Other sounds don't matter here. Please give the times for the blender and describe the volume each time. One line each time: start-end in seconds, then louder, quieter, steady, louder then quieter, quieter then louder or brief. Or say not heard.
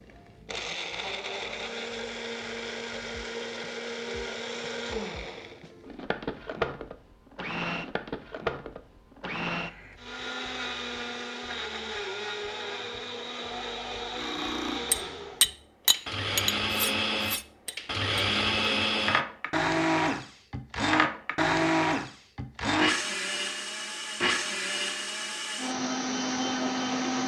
0.0-27.2 louder.